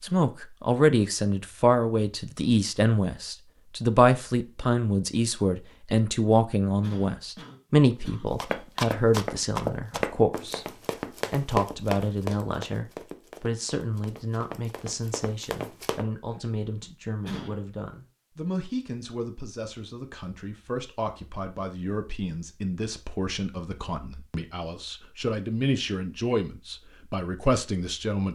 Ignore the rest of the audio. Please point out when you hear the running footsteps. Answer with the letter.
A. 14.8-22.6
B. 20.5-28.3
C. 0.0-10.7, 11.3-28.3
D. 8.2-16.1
D.